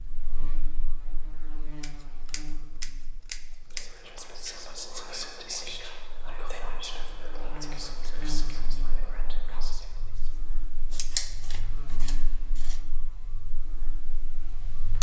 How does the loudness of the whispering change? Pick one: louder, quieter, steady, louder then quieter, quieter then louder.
quieter.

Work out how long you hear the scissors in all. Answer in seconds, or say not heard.
4 s.